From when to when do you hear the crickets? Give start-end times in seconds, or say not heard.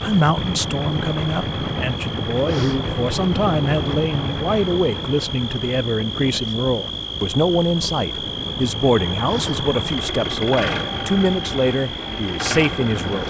0.0-13.2.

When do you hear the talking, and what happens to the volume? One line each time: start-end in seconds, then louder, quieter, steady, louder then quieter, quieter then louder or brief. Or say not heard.
0.0-13.2 steady.